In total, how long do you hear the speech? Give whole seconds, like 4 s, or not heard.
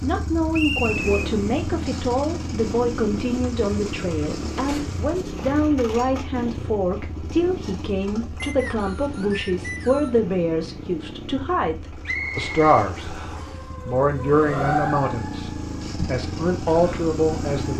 17 s.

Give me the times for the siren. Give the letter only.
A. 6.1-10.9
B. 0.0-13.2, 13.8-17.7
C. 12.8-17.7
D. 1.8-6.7
C.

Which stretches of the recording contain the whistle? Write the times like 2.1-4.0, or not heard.
0.5-1.1, 8.4-10.2, 12.1-13.6.